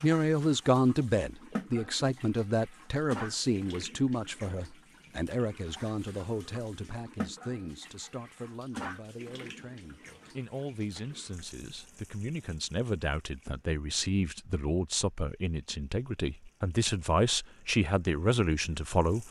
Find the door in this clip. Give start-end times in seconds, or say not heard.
not heard.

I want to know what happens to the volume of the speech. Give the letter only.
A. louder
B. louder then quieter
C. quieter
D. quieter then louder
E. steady
D.